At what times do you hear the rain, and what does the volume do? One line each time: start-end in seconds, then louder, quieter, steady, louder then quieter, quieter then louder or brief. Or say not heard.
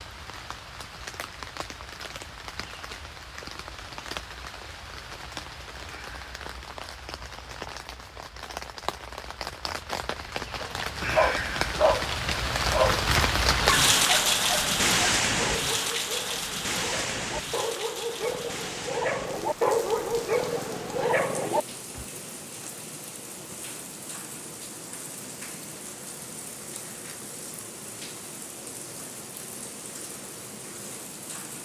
0.0-31.6 louder then quieter.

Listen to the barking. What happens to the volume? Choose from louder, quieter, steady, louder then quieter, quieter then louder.
quieter then louder.